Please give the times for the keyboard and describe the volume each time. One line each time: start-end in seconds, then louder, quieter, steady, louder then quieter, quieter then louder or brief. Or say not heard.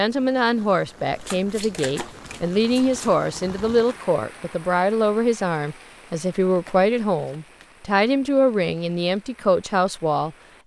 not heard.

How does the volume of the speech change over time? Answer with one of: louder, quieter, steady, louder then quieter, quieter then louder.
steady.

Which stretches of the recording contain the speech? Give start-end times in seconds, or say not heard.
0.0-10.3.